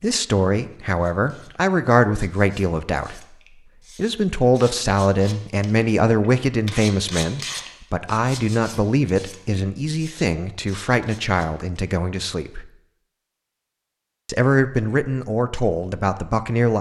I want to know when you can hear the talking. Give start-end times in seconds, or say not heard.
0.0-3.4, 4.0-12.7, 14.2-16.7.